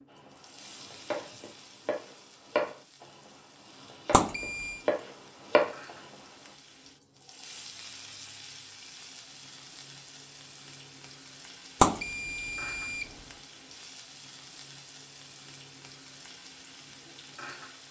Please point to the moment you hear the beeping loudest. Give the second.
12 s.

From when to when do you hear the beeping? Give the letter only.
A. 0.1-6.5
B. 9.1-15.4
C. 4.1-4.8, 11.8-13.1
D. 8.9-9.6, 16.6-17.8
C.